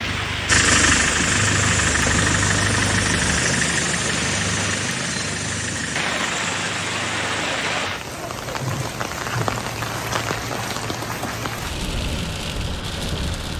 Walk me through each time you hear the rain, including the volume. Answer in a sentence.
You can hear the rain from 0.0 to 13.5 s, at a steady volume.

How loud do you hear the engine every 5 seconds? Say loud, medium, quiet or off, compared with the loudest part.
loud, medium, quiet.